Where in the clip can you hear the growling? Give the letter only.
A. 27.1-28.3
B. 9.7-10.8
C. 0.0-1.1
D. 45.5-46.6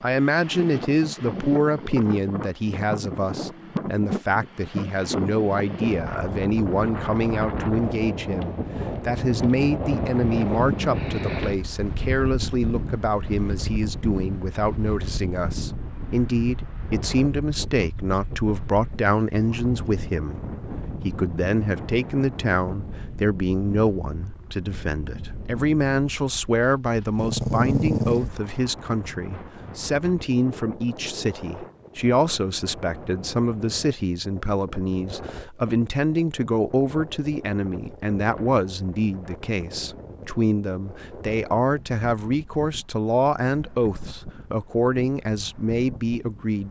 A.